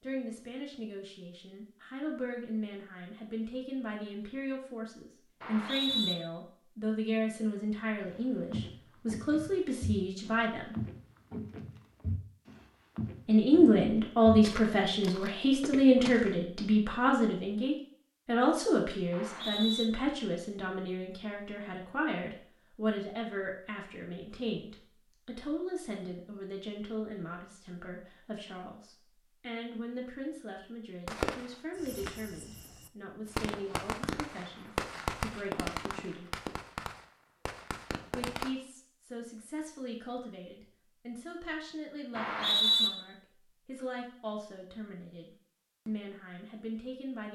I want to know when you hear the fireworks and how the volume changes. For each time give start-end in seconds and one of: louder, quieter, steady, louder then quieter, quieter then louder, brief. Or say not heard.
31.1-38.5 louder then quieter.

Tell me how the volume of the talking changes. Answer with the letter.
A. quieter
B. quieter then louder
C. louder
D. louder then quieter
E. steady
D.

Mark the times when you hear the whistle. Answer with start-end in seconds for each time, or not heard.
5.4-6.2, 19.1-19.9, 42.1-42.9.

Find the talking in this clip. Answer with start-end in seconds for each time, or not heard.
0.0-10.8, 13.2-36.2, 38.1-47.3.